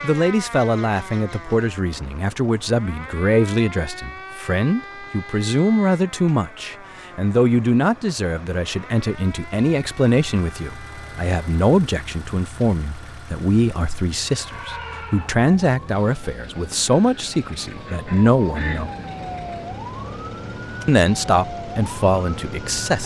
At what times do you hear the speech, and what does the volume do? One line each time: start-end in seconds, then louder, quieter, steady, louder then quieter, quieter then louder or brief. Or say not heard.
0.0-18.9 steady
20.9-23.0 brief.